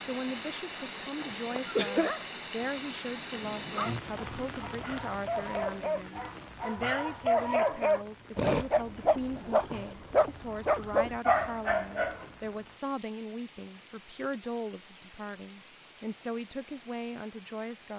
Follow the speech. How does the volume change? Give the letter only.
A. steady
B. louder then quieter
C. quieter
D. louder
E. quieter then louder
A.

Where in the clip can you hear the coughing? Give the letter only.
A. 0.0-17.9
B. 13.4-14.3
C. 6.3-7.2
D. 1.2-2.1
D.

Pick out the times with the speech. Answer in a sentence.
The speech can be heard from 0.0 to 17.9 s.